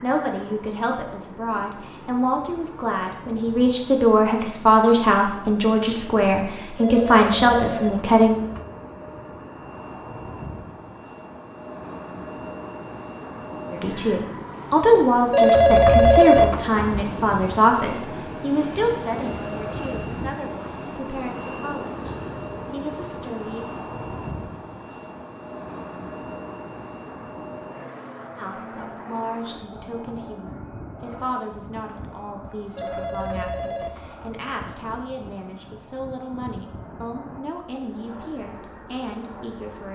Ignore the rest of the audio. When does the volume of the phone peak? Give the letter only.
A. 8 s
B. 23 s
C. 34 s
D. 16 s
D.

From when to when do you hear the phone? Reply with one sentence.
You can hear the phone from 6.8 to 8.7 s, from 15.3 to 16.8 s and from 32.8 to 34.4 s.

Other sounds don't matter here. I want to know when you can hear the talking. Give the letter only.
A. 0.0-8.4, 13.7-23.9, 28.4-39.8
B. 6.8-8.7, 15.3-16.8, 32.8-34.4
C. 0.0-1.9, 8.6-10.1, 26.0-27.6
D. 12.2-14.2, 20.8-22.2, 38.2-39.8
A.